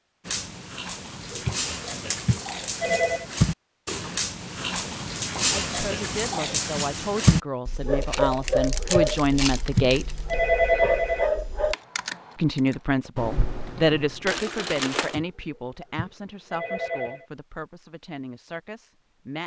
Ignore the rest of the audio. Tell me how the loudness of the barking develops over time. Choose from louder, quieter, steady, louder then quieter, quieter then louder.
louder then quieter.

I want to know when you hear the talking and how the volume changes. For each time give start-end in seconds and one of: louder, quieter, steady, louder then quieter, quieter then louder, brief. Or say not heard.
5.5-10.1 louder
12.3-19.4 quieter.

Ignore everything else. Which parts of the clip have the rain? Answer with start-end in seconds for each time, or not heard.
not heard.